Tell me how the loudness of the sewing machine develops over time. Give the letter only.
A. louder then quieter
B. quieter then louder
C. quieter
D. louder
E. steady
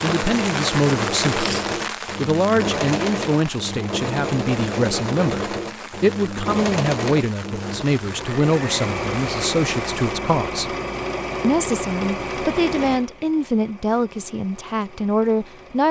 C.